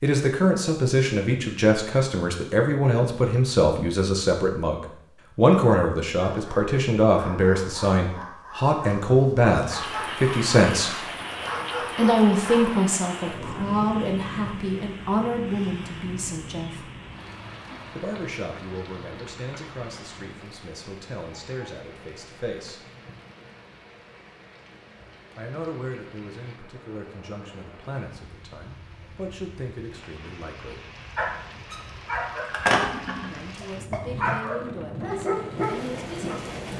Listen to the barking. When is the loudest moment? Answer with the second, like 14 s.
33 s.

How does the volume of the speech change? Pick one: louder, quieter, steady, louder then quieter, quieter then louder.
quieter.